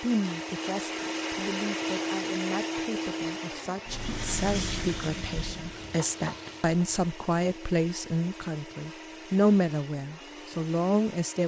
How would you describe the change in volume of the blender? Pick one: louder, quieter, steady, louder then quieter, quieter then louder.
quieter.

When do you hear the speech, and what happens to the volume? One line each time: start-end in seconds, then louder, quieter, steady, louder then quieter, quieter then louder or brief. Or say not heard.
0.0-11.4 louder.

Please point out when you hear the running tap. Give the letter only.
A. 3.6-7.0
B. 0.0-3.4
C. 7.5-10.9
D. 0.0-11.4
A.